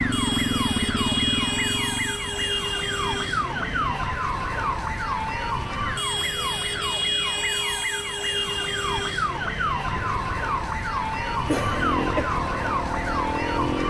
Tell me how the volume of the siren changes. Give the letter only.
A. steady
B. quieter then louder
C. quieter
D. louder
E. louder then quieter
A.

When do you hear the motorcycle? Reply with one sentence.
The motorcycle can be heard from 0.0 to 4.0 s and from 9.9 to 13.8 s.